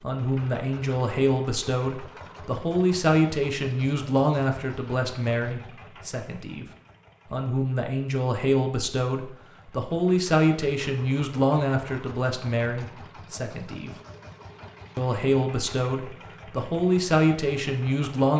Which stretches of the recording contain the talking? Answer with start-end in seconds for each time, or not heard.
0.0-6.7, 7.3-13.9, 14.9-18.3.